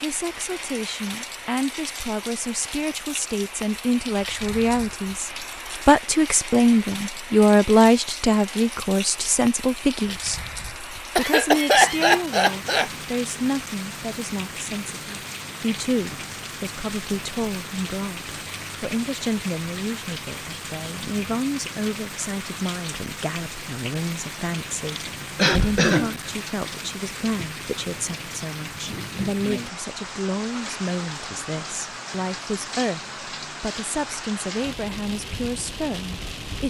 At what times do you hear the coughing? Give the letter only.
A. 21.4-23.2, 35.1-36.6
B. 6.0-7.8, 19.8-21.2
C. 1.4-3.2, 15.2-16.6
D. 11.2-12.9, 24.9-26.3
D.